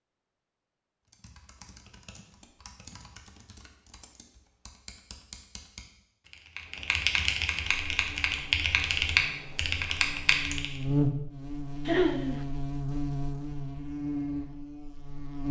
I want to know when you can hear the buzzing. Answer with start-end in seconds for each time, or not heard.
7.8-15.4.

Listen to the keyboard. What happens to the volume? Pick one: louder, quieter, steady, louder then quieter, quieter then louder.
louder.